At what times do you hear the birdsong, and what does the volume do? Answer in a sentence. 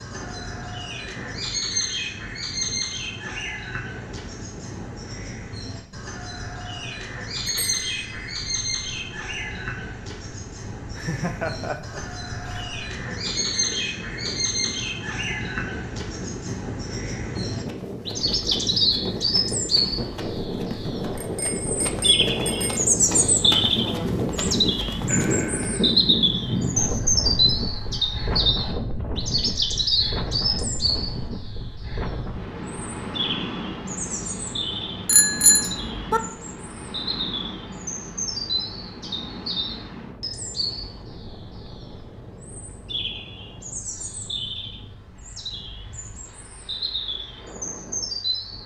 You can hear the birdsong from 0.0 to 48.6 s, getting louder then quieter.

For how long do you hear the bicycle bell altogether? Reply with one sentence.
The bicycle bell can be heard for 4 seconds in total.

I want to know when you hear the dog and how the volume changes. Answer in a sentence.
The dog can't be heard in this clip.